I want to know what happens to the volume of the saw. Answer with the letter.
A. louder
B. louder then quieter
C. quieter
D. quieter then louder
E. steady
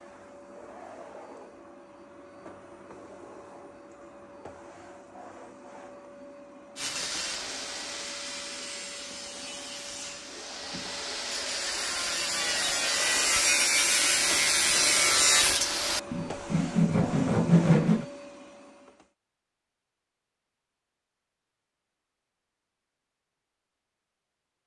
A.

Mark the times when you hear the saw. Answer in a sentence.
You can hear the saw from 6.8 to 18.1 s.